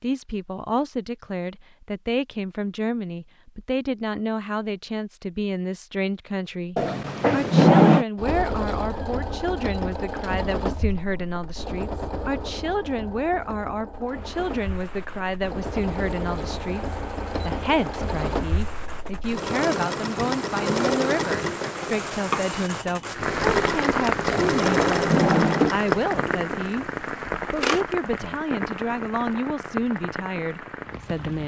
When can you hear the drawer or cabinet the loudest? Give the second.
8 s.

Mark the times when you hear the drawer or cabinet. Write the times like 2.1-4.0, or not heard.
6.8-8.1, 24.3-25.7.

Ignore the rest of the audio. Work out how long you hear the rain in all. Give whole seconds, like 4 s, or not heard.
17 s.